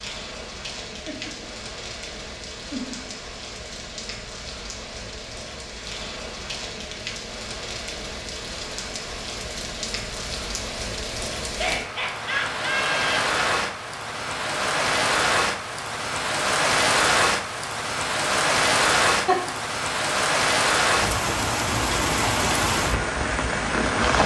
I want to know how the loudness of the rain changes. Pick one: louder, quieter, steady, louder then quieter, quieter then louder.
louder.